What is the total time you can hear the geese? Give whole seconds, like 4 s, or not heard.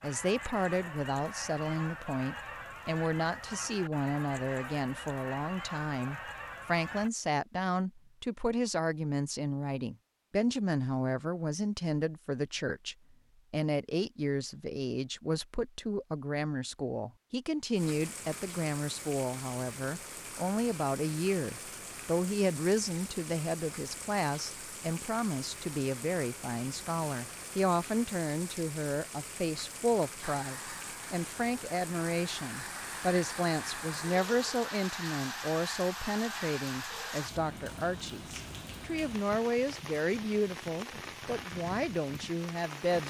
14 s.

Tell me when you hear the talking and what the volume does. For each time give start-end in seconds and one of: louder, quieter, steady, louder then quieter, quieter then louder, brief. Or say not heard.
0.0-43.0 steady.